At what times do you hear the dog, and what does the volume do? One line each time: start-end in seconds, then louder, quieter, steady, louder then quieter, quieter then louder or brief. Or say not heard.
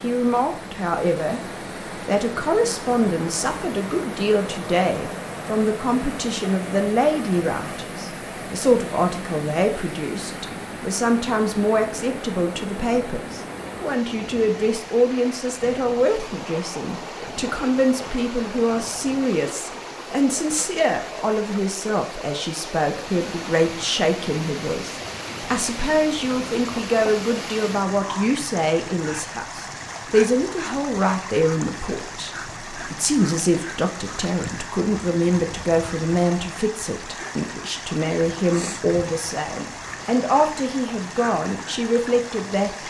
not heard.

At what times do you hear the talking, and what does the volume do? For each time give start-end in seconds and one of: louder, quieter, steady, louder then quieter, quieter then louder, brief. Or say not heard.
0.0-1.4 brief
2.0-42.8 steady.